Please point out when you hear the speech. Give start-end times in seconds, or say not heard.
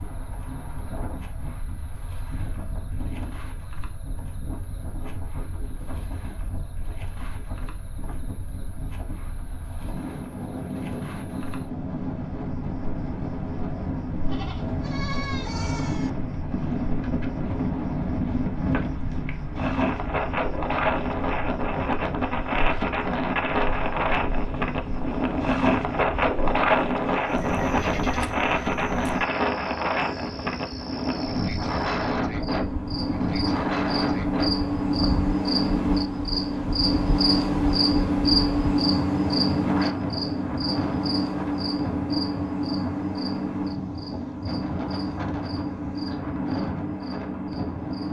not heard.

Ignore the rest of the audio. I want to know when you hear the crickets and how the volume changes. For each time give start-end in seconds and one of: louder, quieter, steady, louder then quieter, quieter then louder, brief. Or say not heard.
0.0-48.0 louder.